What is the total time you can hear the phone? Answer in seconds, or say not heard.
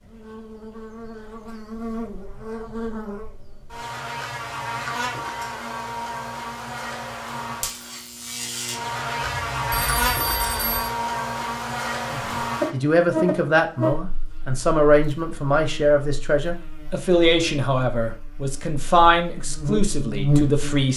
2 s.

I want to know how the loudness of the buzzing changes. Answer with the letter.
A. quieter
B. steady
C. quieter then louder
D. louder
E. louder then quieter
D.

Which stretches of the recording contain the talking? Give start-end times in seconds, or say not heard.
12.1-20.9.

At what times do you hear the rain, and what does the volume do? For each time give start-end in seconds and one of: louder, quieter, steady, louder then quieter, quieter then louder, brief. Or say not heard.
not heard.